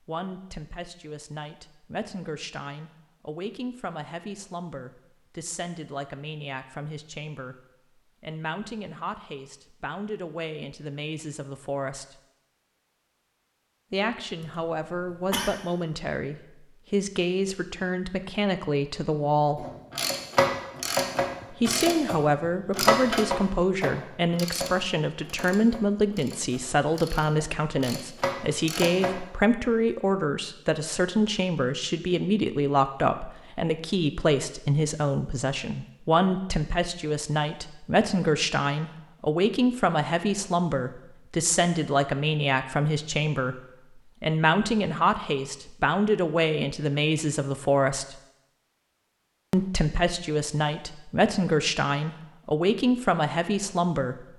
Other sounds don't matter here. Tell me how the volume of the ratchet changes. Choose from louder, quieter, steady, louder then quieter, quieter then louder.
quieter then louder.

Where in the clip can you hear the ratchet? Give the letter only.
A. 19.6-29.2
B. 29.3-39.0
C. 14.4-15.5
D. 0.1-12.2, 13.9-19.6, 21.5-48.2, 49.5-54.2
A.